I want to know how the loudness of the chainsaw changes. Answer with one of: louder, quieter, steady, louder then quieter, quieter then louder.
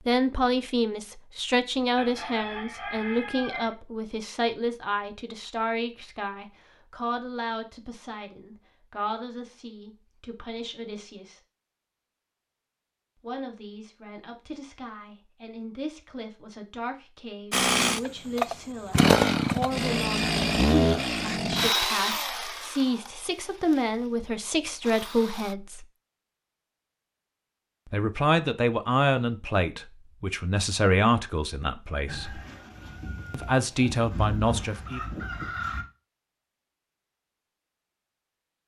quieter.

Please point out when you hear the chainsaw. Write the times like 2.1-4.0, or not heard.
17.5-25.6.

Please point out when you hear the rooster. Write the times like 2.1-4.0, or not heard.
1.9-3.8, 32.0-35.9.